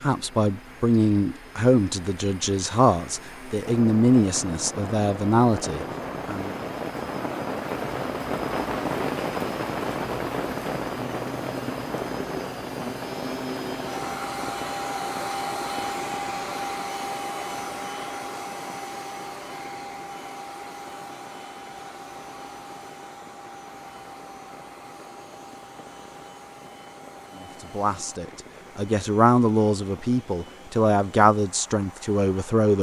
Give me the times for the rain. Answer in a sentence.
The rain can be heard from 0.0 to 32.5 s.